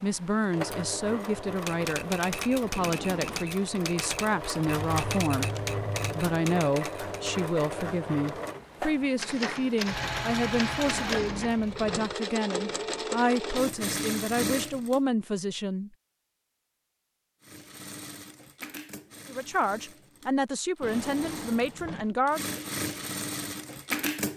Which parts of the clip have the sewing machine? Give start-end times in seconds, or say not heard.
0.0-15.0, 17.4-24.3.